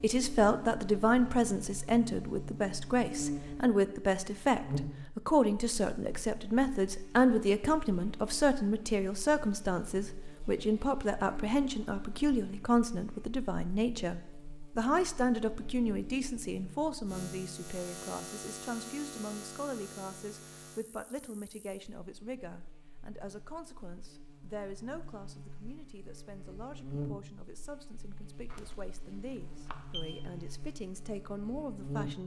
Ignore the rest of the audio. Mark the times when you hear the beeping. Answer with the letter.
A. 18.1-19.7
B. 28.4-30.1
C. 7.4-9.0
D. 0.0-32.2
B.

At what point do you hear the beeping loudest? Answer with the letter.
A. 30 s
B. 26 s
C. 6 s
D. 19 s
A.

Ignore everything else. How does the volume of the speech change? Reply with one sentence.
The loudness of the speech goes down.